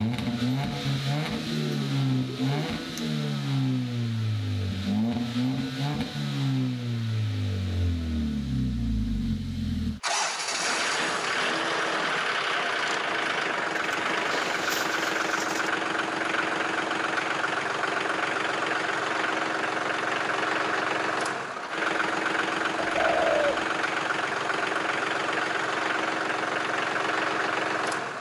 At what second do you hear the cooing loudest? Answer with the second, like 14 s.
23 s.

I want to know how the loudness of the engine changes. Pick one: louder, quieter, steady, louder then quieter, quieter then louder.
steady.